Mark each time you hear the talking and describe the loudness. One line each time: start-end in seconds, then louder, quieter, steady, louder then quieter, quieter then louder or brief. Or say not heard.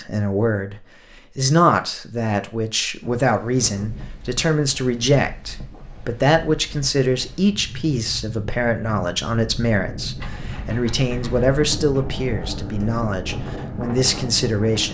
0.0-14.8 steady.